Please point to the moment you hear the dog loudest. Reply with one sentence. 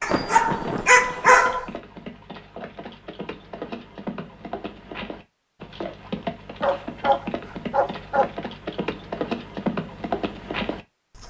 The volume of the dog peaks at 1 second.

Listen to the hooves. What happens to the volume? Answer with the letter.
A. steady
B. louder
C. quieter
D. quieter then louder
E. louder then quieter
B.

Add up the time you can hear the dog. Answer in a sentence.
The dog can be heard for 3 seconds in total.